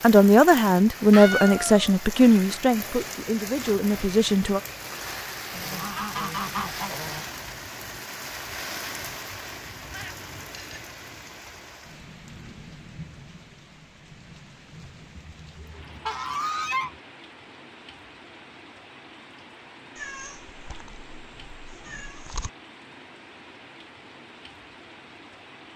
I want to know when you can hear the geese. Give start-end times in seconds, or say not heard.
5.5-7.2, 15.2-17.0.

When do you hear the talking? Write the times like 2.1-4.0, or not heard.
0.0-4.6.